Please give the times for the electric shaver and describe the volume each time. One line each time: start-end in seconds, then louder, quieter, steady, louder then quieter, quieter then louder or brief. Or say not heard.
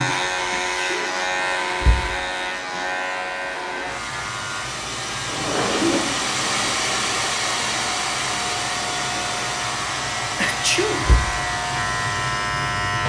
0.0-13.0 quieter then louder.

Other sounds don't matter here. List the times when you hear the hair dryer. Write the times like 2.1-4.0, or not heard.
0.1-13.0.